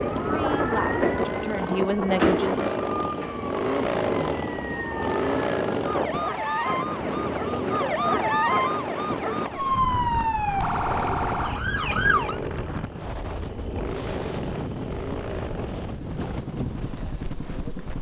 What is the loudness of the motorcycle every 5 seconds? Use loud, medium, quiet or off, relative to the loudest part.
loud, loud, medium, medium.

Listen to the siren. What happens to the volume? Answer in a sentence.
The loudness of the siren goes down, then up.